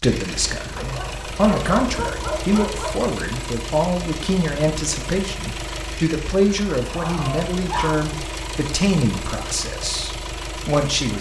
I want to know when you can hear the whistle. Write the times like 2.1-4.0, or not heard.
not heard.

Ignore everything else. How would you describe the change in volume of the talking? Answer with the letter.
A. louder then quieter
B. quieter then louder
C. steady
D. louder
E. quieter
C.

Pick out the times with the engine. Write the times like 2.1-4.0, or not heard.
0.0-11.1.